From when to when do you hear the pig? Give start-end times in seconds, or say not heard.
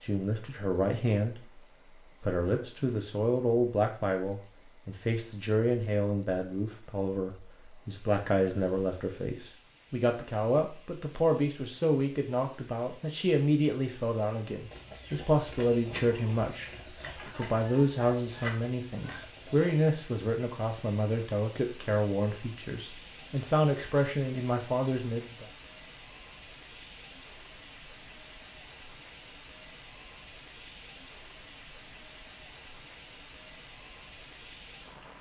not heard.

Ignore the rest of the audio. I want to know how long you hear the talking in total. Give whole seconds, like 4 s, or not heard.
24 s.